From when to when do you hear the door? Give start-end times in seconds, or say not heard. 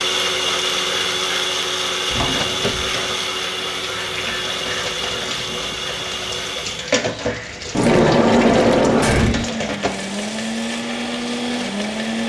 2.1-3.0, 7.7-9.4.